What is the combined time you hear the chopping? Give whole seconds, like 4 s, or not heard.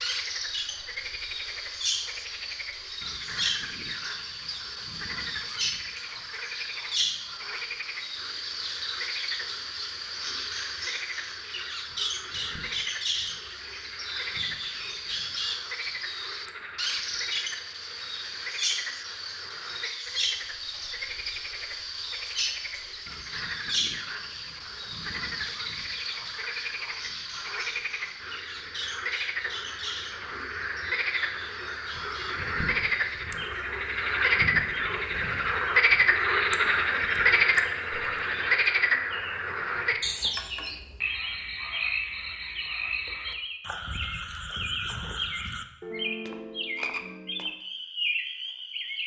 not heard.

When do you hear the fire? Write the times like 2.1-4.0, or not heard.
not heard.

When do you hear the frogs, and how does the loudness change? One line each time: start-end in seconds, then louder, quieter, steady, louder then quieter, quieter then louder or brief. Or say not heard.
0.0-49.0 louder then quieter.